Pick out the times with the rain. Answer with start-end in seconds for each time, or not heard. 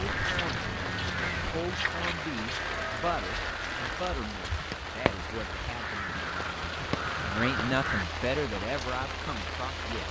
0.0-10.0.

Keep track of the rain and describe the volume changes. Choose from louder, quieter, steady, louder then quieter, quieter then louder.
steady.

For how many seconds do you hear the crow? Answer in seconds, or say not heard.
8 s.